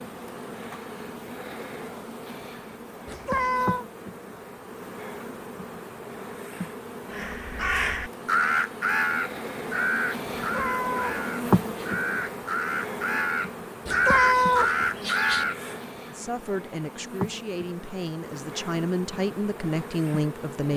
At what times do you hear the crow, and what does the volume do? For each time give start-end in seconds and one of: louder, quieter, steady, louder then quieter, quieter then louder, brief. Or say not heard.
7.1-15.6 quieter then louder.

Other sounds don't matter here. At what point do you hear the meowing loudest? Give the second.
14 s.